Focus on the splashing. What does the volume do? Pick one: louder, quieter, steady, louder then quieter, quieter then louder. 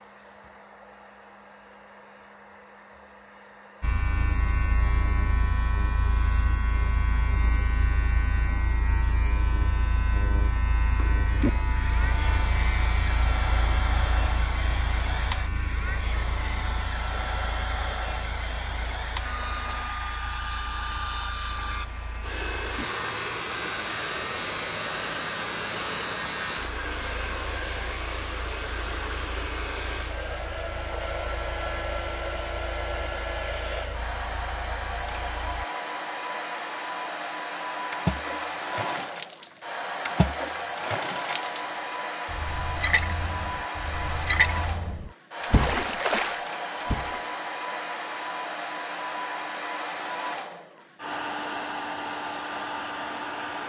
louder.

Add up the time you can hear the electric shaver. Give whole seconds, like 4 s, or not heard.
32 s.